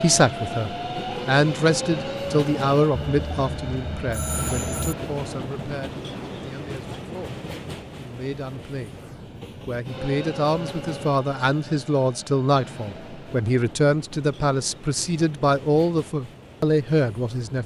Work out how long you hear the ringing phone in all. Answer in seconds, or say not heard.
2 s.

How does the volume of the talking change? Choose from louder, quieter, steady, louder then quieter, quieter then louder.
quieter then louder.